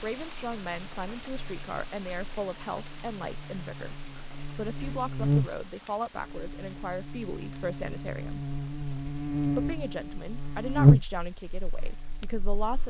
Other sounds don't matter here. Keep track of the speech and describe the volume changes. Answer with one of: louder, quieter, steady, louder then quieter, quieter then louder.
steady.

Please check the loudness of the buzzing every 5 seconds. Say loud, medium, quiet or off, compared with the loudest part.
quiet, medium, loud.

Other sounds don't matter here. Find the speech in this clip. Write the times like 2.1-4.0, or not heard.
0.0-8.4, 9.3-12.8.